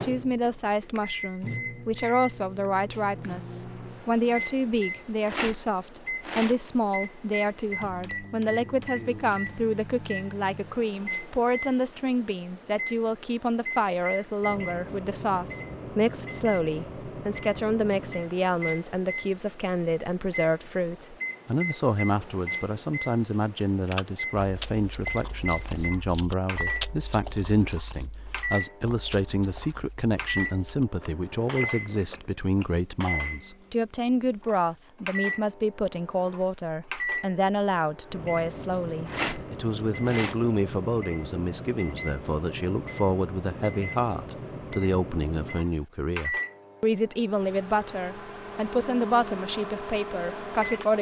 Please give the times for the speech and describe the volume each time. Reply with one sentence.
The speech can be heard from 0.0 to 50.9 s, at a steady volume.